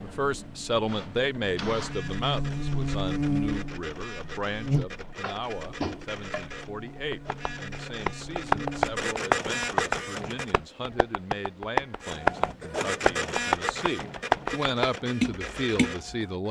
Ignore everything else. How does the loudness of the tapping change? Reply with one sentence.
The loudness of the tapping goes up.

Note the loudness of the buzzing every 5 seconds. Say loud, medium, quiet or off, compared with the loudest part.
loud, medium, off, off.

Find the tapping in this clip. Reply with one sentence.
You can hear the tapping from 4.8 to 15.9 s.